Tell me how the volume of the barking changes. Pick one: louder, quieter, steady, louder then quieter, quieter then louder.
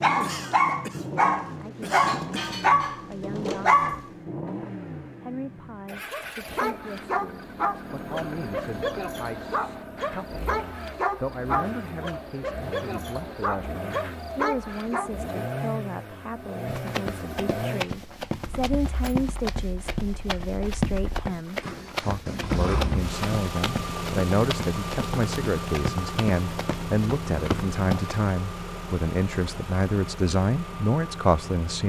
quieter.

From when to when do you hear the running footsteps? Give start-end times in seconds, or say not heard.
16.6-28.2.